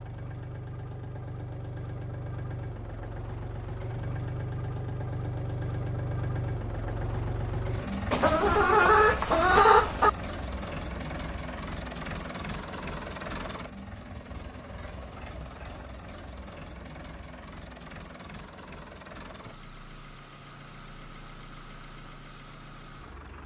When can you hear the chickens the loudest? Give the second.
10 s.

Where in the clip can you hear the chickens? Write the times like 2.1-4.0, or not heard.
8.1-10.1.